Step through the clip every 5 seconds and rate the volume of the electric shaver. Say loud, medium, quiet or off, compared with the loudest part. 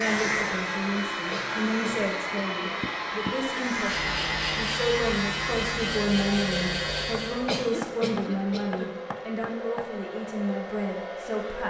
loud, loud, off.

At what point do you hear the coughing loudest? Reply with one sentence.
The loudest moment of the coughing is at 8 seconds.